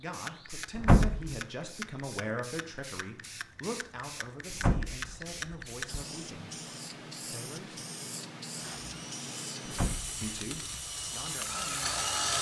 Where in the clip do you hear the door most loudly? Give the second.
1 s.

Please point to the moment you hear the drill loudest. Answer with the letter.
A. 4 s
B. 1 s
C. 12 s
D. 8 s
C.